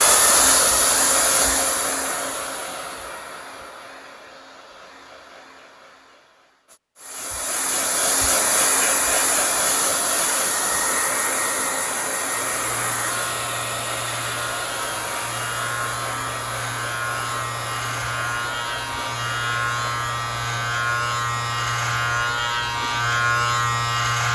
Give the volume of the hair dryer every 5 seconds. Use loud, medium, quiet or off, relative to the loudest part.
loud, loud, loud, medium, quiet.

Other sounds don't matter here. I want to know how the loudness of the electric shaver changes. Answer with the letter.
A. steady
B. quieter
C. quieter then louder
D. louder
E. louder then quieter
D.